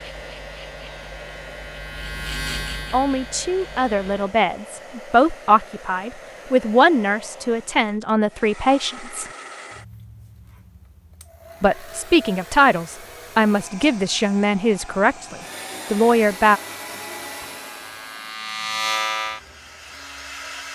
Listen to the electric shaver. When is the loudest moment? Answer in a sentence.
The loudest moment of the electric shaver is at 19 seconds.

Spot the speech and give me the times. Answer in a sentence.
The speech can be heard from 2.9 to 9.2 s and from 11.6 to 16.6 s.